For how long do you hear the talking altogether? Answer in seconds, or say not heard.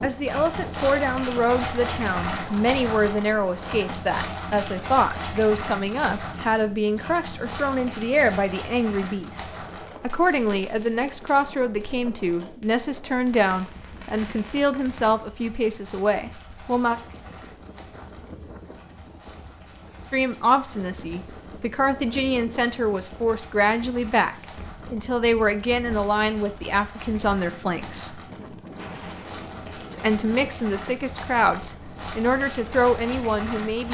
29 s.